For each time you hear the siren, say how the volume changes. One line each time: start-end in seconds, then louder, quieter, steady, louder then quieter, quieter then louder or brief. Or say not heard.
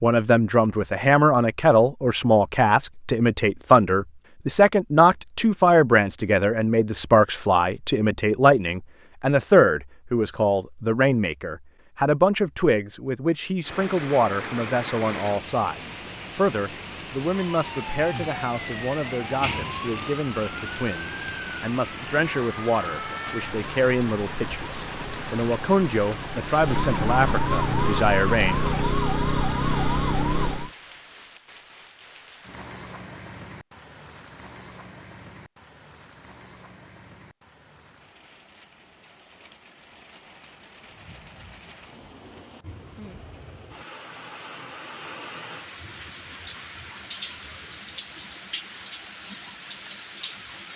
17.2-30.7 louder.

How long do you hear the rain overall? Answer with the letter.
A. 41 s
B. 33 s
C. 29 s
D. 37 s
D.